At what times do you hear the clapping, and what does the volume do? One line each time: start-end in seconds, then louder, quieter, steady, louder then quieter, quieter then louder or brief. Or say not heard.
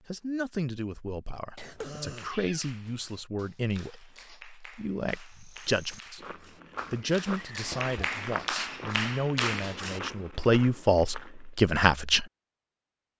2.0-10.4 louder.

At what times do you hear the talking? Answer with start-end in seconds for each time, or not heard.
0.1-12.2.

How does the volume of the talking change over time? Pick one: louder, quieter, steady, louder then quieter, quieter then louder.
louder.